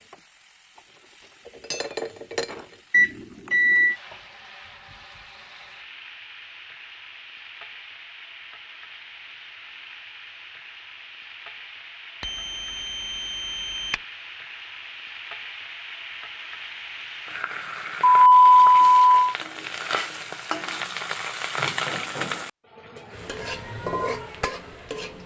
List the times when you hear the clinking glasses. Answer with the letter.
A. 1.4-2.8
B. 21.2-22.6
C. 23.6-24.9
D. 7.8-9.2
A.